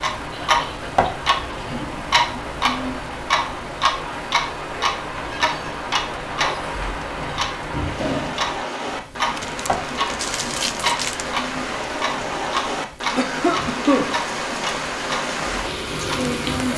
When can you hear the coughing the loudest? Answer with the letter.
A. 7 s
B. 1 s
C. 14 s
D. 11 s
C.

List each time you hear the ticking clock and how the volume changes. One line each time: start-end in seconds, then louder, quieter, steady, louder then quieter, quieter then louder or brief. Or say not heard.
0.0-16.7 quieter.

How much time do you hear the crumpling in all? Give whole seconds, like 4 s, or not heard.
2 s.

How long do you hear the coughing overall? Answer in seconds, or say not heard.
2 s.